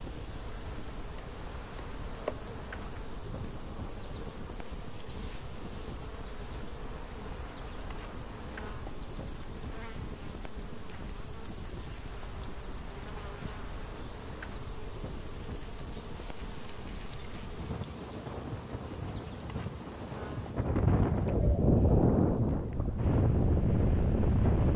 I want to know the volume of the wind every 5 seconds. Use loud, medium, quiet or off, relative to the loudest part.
quiet, quiet, quiet, quiet, loud.